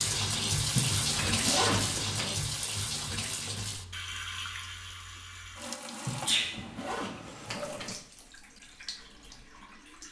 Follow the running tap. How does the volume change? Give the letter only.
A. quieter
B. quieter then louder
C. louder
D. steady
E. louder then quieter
A.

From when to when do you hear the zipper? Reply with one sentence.
The zipper can be heard from 0.8 to 2.4 s and from 6.0 to 8.0 s.